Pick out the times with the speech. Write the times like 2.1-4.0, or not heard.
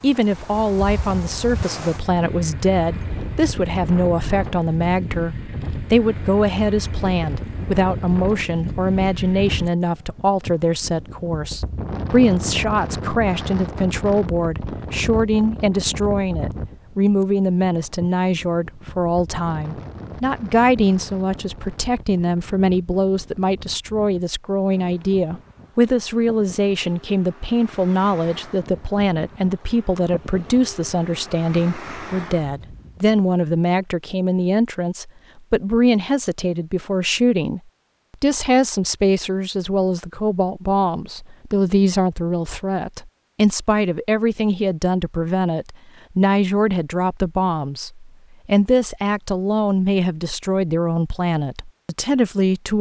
0.0-52.7.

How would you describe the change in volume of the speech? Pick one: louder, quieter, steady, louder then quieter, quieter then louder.
steady.